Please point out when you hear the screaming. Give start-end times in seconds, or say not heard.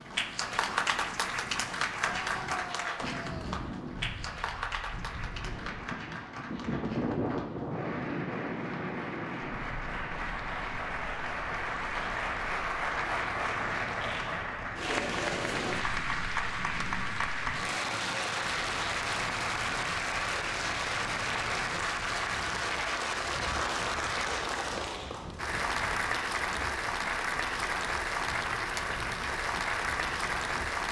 2.1-3.6.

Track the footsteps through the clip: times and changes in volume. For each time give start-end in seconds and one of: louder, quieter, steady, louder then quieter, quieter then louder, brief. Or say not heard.
not heard.